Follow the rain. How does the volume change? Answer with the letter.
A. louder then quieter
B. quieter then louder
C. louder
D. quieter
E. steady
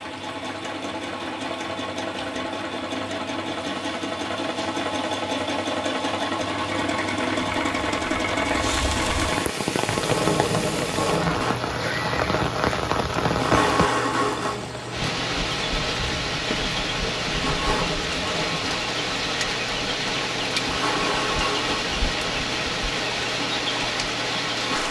C.